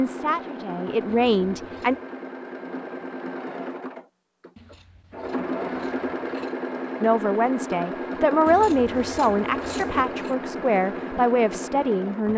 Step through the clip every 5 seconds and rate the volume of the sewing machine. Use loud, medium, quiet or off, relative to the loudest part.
medium, loud, loud.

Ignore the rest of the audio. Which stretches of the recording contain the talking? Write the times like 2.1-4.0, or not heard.
0.0-1.9, 7.0-12.3.